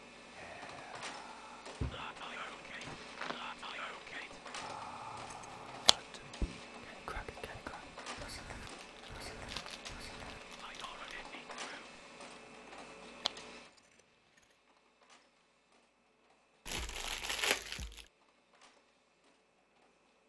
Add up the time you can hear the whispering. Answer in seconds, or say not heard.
12 s.